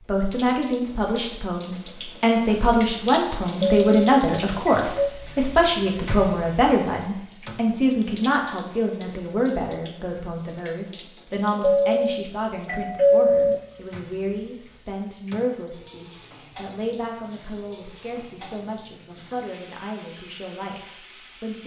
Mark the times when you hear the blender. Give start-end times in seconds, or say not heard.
not heard.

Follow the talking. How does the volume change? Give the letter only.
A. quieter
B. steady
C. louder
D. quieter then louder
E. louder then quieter
A.